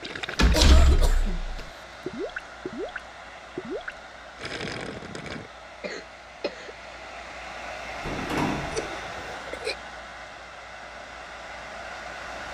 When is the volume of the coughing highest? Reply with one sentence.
The loudest moment of the coughing is at 1 second.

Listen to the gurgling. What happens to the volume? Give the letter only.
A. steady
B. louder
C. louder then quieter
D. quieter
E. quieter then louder
A.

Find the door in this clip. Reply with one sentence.
You can hear the door from 0.3 to 1.6 s and from 8.0 to 8.9 s.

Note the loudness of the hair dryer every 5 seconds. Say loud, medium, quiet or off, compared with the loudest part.
medium, loud, loud.